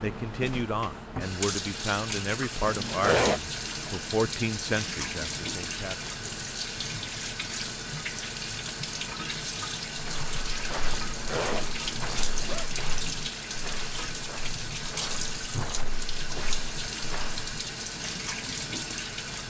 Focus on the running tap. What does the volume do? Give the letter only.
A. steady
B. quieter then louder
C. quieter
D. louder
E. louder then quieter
A.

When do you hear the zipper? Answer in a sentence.
You can hear the zipper from 2.6 to 3.4 s and from 10.9 to 12.7 s.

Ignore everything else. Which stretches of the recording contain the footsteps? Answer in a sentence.
The footsteps can be heard from 9.9 to 17.5 s.